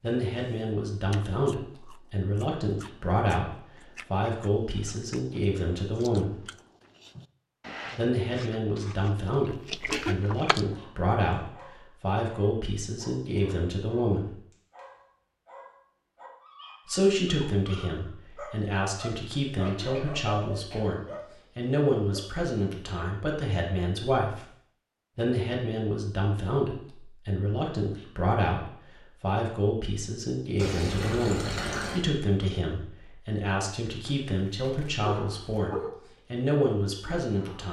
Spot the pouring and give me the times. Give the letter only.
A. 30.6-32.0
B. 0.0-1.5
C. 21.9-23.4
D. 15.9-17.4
A.